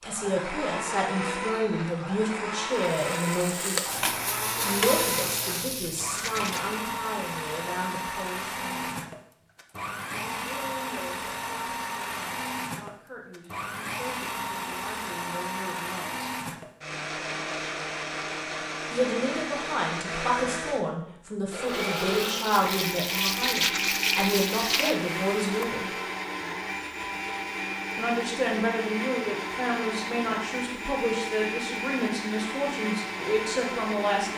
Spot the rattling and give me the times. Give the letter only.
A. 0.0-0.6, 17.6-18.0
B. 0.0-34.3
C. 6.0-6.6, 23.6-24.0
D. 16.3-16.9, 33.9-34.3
C.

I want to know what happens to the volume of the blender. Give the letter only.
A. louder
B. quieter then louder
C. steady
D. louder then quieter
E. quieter
C.